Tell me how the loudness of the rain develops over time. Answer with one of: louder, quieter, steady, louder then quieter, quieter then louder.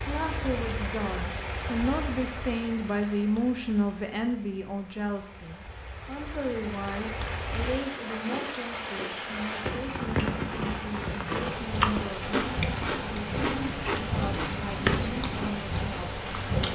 quieter then louder.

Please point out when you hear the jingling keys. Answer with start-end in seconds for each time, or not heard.
not heard.